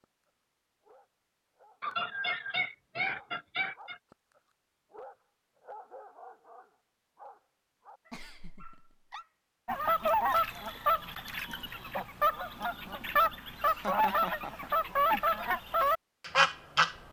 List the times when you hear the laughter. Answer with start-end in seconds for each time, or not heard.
1.8-4.0, 8.1-9.2, 13.6-15.2.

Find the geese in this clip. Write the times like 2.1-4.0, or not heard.
9.7-17.0.